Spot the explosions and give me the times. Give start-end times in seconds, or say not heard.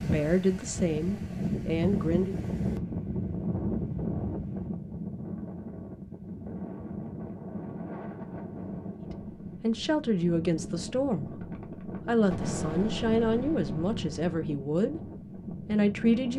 12.3-14.3.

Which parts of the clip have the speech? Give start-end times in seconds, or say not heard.
0.0-2.4, 9.6-16.3.